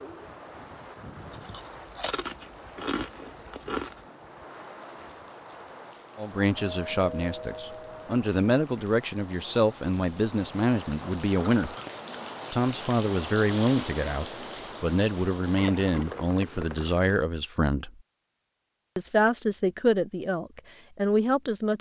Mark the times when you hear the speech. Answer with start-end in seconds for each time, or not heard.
6.2-11.7, 12.5-17.9, 18.9-21.7.